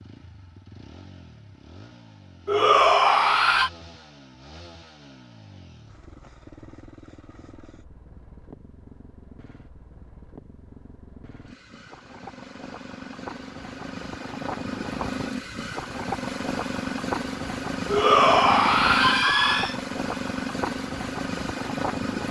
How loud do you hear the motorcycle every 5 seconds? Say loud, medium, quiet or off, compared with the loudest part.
quiet, quiet, medium, loud, loud.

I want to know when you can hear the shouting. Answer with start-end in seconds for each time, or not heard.
2.5-3.7, 17.9-19.8.